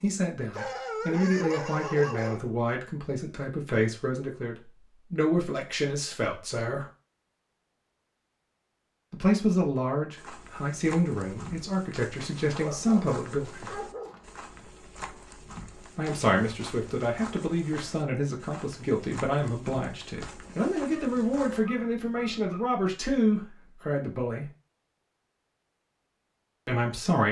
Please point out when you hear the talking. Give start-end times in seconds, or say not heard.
0.0-6.8, 9.1-13.7, 15.9-24.4, 26.6-27.2.